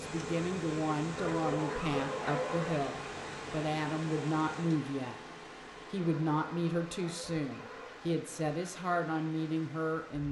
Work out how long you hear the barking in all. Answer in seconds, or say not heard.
4 s.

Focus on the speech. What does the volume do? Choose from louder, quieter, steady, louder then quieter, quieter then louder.
steady.